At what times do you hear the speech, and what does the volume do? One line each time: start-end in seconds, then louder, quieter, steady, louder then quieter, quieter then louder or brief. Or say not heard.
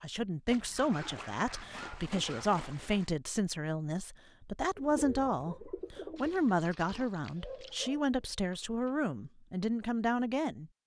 0.0-10.7 steady.